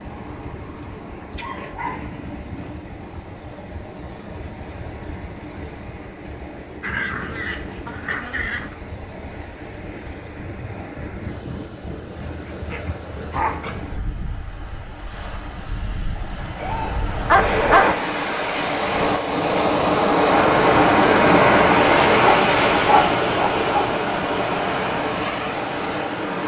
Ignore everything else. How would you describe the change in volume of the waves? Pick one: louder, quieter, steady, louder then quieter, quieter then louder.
louder.